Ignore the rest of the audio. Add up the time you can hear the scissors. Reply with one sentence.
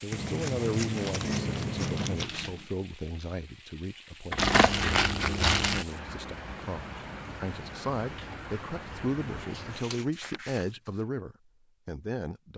You can hear the scissors for 3 seconds altogether.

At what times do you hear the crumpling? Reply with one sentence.
The crumpling can be heard from 0.9 to 2.7 s, from 4.3 to 5.8 s and from 10.0 to 11.0 s.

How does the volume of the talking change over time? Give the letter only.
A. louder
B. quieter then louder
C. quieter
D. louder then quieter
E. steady
B.